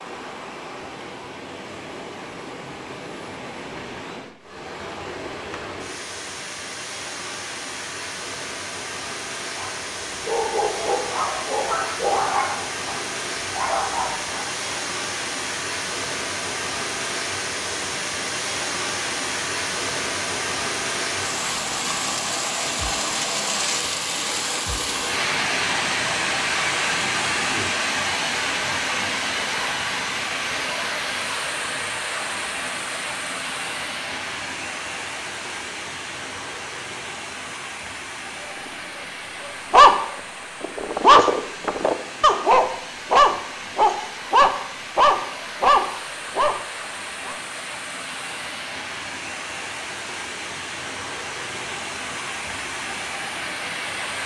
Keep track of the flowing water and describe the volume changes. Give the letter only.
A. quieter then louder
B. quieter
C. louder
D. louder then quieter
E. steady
D.